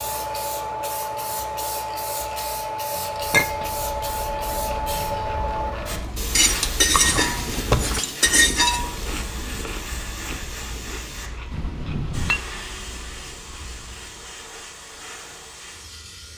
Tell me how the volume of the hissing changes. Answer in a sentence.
The volume of the hissing goes down.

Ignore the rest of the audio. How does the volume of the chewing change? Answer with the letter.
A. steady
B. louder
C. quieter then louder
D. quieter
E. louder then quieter
E.